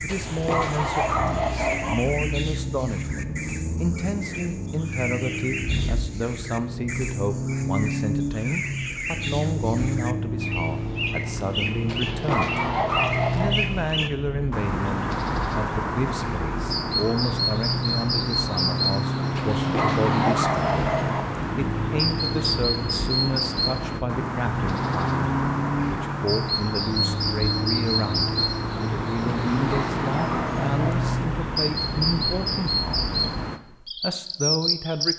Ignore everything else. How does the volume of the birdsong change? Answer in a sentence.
The loudness of the birdsong goes up.